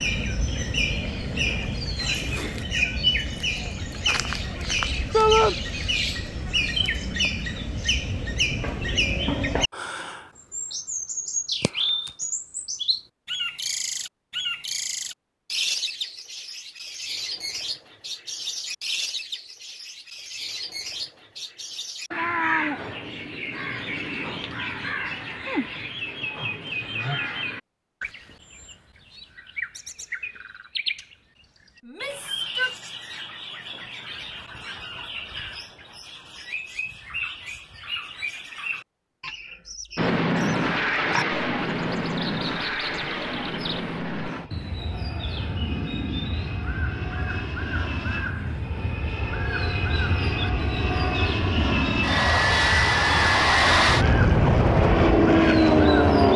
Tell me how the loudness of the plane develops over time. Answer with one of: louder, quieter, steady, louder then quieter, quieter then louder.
quieter then louder.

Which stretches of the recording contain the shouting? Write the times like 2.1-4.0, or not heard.
5.1-5.5, 31.8-32.8.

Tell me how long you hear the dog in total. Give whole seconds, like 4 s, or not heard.
not heard.